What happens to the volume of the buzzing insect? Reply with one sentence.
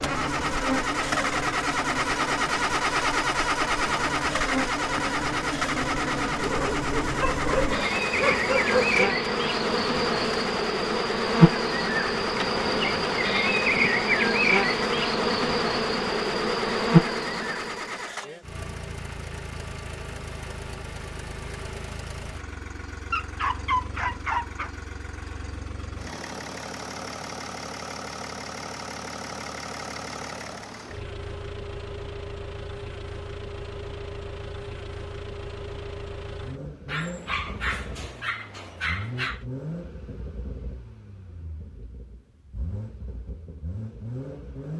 The volume of the buzzing insect goes up.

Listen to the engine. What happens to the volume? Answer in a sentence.
The loudness of the engine goes down.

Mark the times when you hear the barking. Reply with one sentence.
You can hear the barking from 6.4 to 9.0 s, from 23.1 to 24.7 s and from 36.9 to 39.4 s.